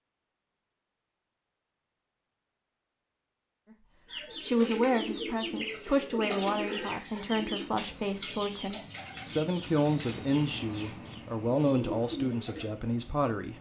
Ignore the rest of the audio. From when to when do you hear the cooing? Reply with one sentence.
The cooing can be heard from 4.0 to 12.7 s.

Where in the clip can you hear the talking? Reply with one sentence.
The talking can be heard from 3.7 to 13.5 s.